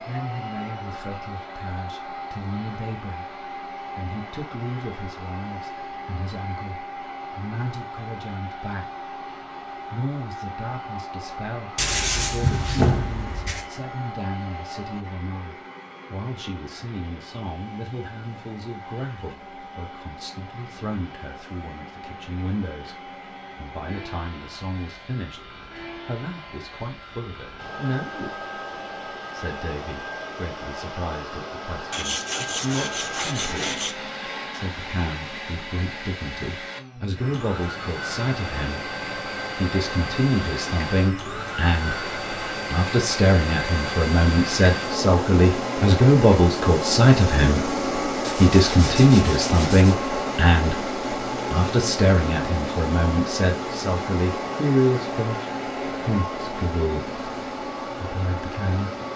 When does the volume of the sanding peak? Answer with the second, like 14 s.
13 s.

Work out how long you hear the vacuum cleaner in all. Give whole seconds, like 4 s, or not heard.
59 s.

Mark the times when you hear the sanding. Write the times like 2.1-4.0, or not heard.
11.8-13.7, 31.9-34.0, 48.2-50.0.